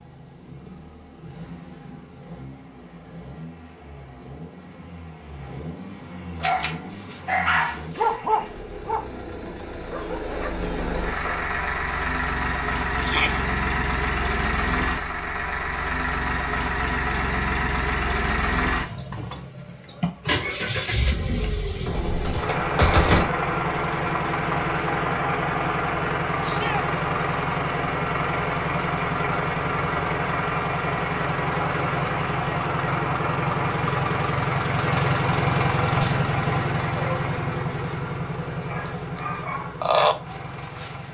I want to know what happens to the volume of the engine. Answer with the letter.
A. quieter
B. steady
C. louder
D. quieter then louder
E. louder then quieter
C.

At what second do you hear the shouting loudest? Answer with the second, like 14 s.
13 s.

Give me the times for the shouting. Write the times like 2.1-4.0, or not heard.
13.0-13.4, 26.4-26.9.